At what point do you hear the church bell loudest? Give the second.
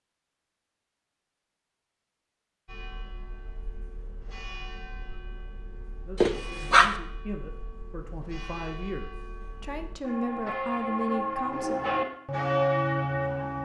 13 s.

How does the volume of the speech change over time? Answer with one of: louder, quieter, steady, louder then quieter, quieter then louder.
louder.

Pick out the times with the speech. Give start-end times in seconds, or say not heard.
6.0-11.8.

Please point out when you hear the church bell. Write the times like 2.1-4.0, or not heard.
2.6-13.6.